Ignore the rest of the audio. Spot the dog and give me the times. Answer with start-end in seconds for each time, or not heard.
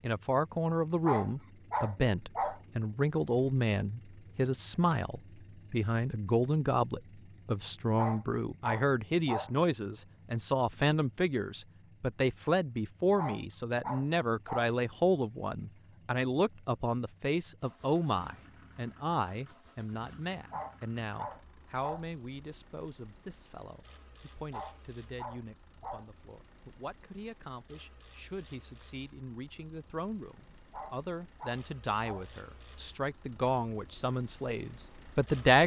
1.1-2.6, 8.0-9.5, 13.2-14.7, 20.5-22.1, 24.5-26.1, 30.7-32.2.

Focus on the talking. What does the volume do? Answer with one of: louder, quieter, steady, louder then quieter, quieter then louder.
quieter then louder.